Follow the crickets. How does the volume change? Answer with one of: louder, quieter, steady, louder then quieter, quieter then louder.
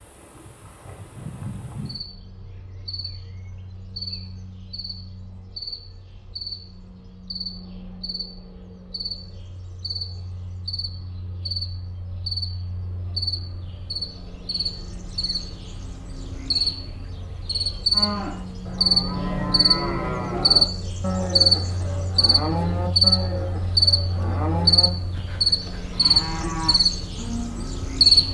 louder.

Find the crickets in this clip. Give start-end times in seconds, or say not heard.
0.0-28.2.